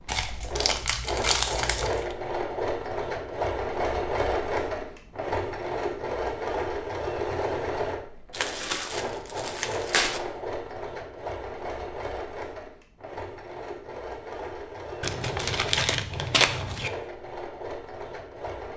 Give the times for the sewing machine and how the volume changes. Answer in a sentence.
The sewing machine can be heard from 0.0 to 18.7 s, getting quieter.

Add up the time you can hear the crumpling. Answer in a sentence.
The crumpling can be heard for 6 seconds in total.